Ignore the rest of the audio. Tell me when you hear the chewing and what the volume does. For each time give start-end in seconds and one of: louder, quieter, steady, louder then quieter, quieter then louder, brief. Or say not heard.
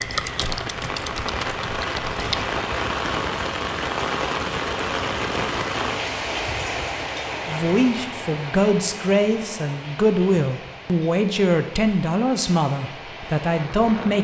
not heard.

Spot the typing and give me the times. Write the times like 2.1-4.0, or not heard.
0.0-2.5.